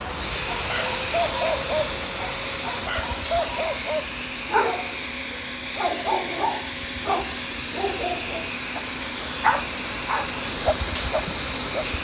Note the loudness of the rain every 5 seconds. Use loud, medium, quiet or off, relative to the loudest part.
loud, medium, loud.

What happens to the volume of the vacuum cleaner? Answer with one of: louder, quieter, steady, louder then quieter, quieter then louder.
steady.